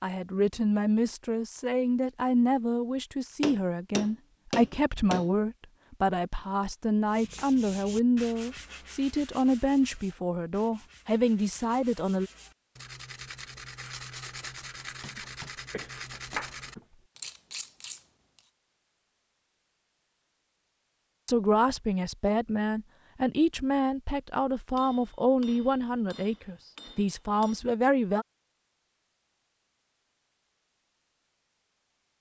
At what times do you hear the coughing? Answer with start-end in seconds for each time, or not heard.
15.2-17.0.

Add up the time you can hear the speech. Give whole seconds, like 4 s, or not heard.
19 s.